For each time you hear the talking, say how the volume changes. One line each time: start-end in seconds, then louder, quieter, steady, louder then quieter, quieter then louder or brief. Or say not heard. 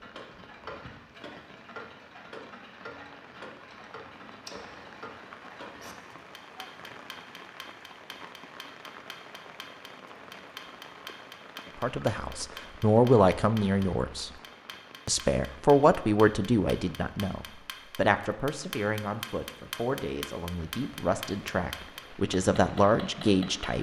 11.8-14.3 brief
15.1-23.7 quieter then louder.